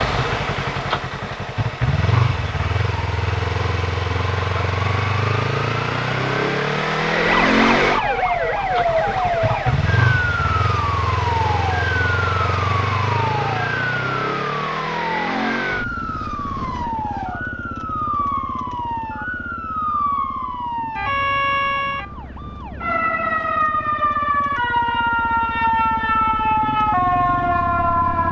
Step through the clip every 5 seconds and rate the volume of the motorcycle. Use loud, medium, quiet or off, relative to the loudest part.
loud, loud, loud, medium, quiet, medium.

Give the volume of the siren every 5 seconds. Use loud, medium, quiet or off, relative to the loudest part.
off, loud, medium, medium, loud, loud.